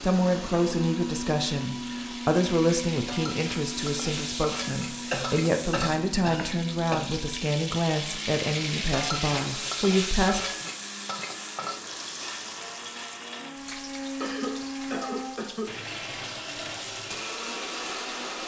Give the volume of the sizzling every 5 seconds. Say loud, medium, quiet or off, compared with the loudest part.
loud, loud, loud, medium.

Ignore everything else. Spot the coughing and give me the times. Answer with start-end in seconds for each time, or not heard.
5.1-7.2, 14.2-15.7.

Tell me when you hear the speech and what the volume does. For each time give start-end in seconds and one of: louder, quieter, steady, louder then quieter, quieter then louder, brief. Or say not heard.
0.0-10.4 steady.